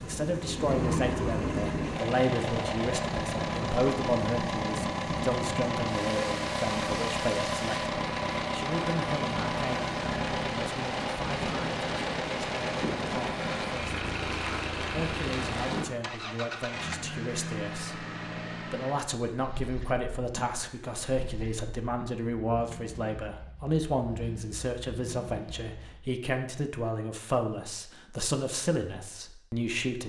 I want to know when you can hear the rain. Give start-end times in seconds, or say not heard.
0.0-15.9.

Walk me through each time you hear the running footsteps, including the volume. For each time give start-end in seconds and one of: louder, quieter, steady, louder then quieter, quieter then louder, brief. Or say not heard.
not heard.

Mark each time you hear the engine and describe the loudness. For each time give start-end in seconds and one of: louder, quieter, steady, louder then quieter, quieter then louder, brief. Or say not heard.
0.0-26.0 quieter.